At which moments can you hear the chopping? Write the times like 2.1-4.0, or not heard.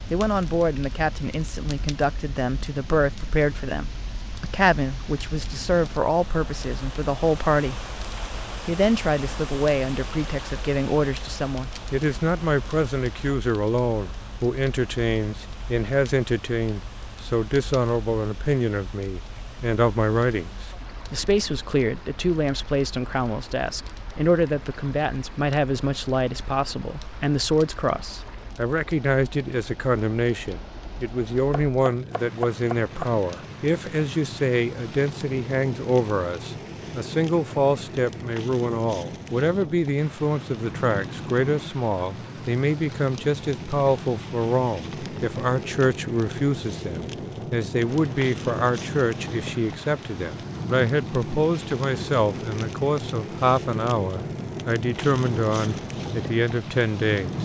31.5-33.1.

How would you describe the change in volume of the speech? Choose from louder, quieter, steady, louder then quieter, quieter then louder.
steady.